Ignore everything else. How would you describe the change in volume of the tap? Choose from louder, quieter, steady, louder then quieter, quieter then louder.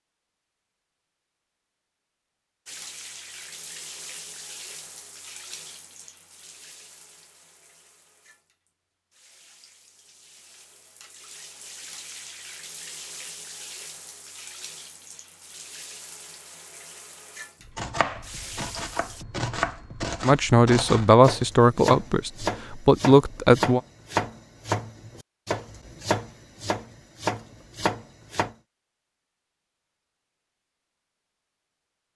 quieter then louder.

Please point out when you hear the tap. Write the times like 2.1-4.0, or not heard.
2.6-19.2.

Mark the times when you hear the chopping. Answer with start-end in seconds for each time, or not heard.
17.6-28.6.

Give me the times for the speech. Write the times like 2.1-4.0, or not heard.
20.2-23.8.